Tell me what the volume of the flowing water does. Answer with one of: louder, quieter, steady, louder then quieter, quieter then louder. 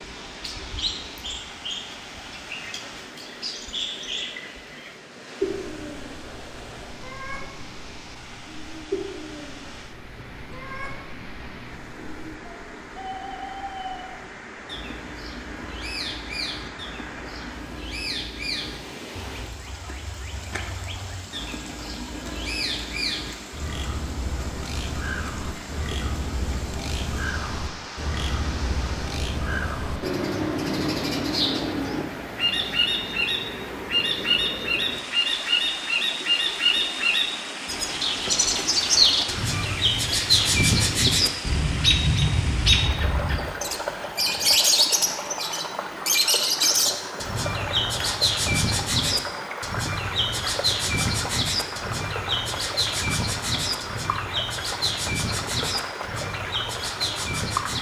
louder.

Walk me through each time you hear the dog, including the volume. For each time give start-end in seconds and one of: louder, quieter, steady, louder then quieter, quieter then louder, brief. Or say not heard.
not heard.